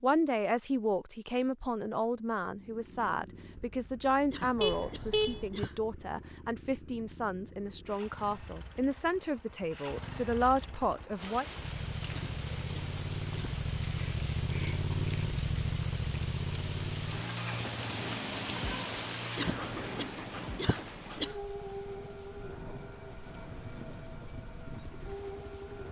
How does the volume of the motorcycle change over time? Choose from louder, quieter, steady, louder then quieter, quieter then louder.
louder then quieter.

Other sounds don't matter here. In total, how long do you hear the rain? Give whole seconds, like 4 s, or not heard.
15 s.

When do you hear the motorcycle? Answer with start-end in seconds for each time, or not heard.
2.5-25.8.